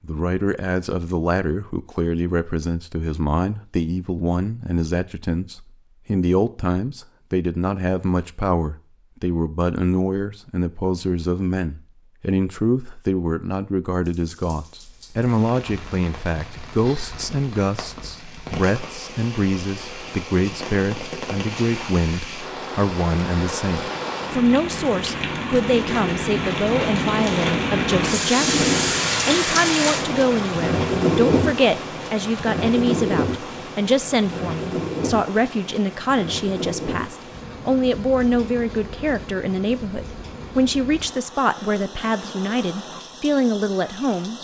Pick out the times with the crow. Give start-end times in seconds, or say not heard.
not heard.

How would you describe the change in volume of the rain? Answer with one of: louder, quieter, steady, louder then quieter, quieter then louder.
louder then quieter.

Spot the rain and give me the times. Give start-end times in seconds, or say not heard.
14.1-44.3.